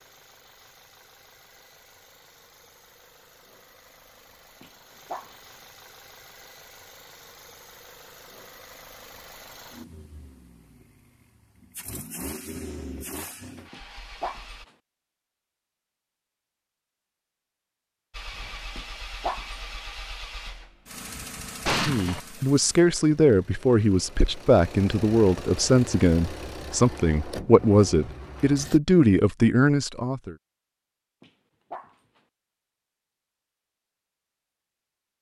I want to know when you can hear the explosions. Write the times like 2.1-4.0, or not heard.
21.6-22.2.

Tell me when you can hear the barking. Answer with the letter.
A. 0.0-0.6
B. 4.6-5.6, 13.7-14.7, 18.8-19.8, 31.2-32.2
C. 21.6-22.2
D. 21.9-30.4
B.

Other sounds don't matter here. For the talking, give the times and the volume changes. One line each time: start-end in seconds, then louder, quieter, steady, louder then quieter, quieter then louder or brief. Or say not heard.
21.9-30.4 steady.